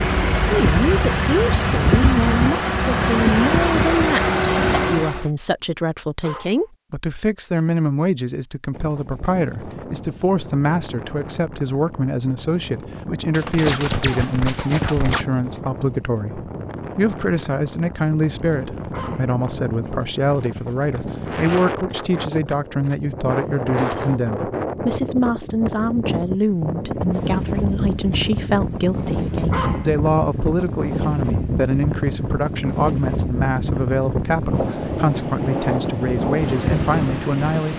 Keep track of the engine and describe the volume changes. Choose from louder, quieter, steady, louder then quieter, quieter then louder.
steady.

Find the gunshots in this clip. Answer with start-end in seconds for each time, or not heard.
13.3-15.2, 21.1-24.2.